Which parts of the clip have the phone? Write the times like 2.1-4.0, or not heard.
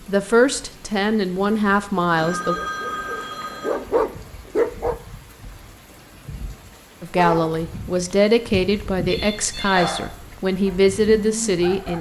2.1-4.0, 9.1-10.0.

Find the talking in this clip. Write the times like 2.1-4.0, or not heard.
0.1-2.5, 7.0-11.9.